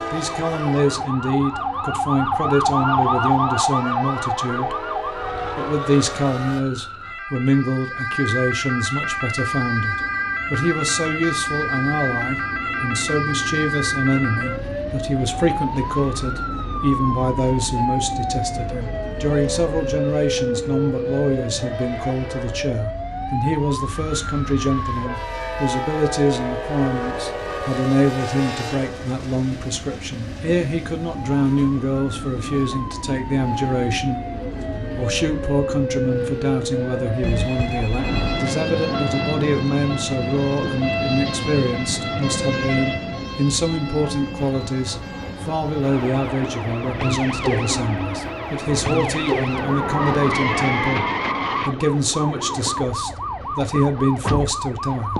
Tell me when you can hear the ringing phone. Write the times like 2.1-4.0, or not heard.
2.6-3.9, 37.2-38.4.